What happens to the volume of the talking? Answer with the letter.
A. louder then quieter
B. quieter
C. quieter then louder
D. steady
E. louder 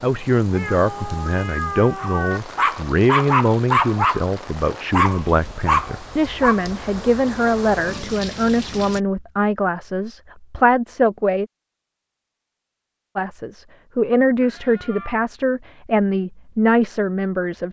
D.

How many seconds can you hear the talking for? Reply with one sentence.
The talking can be heard for 16 seconds in total.